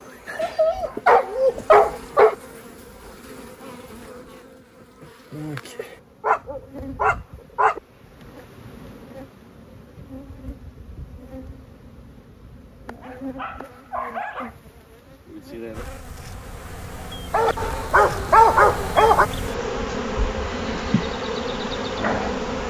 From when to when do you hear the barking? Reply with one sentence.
You can hear the barking from 0.3 to 2.4 s, from 5.8 to 7.8 s, from 13.0 to 14.6 s and from 17.3 to 19.2 s.